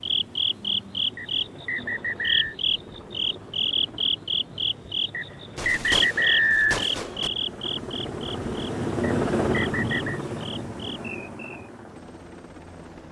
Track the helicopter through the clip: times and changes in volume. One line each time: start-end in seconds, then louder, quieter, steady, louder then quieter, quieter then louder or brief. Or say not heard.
0.0-13.0 louder then quieter.